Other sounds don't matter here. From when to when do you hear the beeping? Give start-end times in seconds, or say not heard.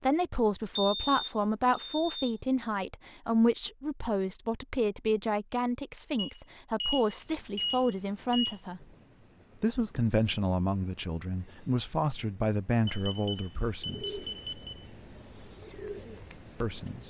0.8-2.4, 6.2-8.6, 12.8-14.7.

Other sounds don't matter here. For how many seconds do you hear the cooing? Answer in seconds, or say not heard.
3 s.